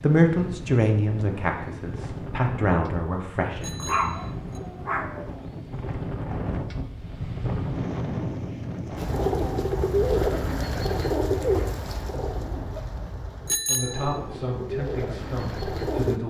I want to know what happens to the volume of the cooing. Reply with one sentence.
The loudness of the cooing goes down, then up.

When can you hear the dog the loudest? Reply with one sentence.
The loudest moment of the dog is at 4 seconds.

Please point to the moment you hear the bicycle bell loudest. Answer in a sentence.
The loudest moment of the bicycle bell is at 14 seconds.